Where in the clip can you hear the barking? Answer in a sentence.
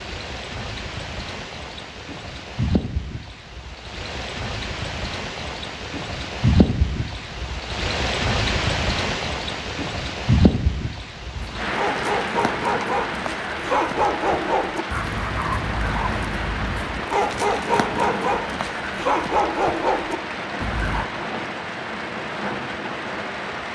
You can hear the barking from 11.3 to 21.1 s.